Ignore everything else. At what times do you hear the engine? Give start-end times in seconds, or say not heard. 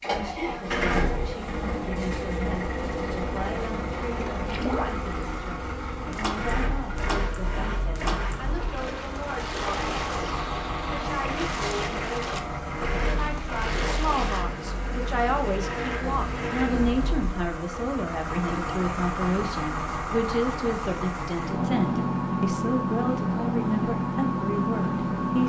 0.0-25.4.